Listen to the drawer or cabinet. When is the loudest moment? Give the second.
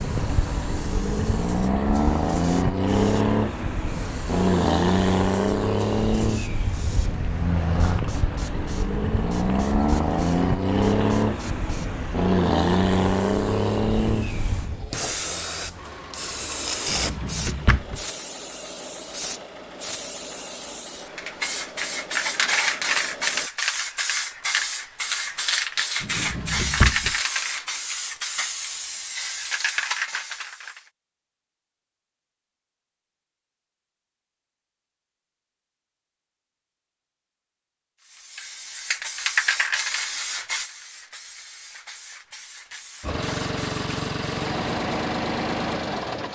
27 s.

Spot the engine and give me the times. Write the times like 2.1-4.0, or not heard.
0.0-23.5, 43.0-46.2.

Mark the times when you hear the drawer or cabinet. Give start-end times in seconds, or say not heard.
16.9-18.0, 26.0-27.1.